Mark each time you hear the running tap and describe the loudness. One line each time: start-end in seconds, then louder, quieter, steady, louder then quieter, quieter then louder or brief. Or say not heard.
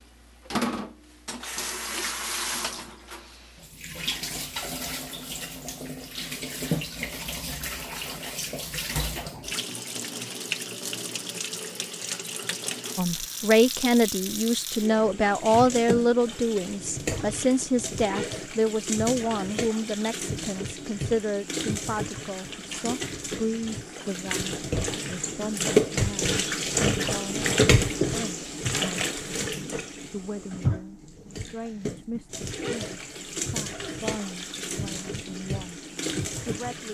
0.0-36.8 louder then quieter.